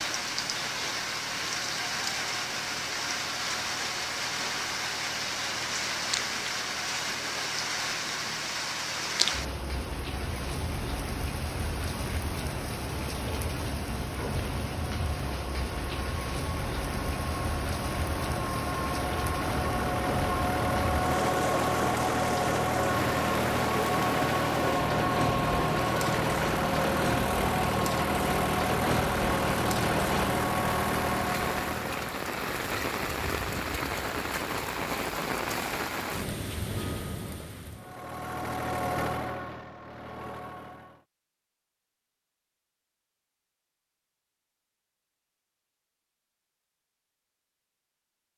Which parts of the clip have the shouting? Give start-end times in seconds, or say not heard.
not heard.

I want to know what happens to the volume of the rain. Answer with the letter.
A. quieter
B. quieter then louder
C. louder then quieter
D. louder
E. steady
E.